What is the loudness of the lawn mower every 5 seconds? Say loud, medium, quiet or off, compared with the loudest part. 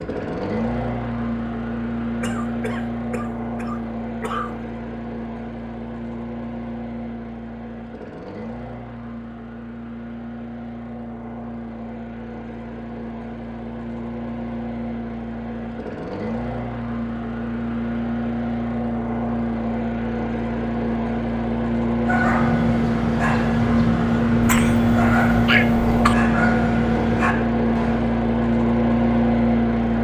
medium, quiet, quiet, medium, loud, loud.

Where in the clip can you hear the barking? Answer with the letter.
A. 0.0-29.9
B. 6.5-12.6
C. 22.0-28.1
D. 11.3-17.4
C.